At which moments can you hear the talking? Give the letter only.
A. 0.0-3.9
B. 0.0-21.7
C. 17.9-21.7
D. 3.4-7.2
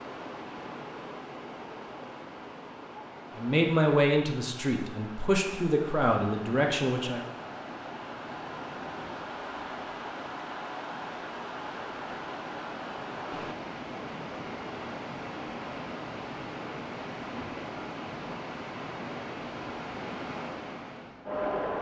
D.